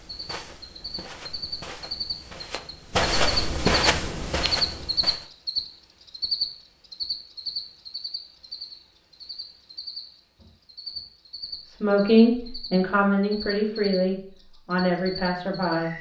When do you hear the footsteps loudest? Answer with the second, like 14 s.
4 s.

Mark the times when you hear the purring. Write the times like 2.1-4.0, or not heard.
not heard.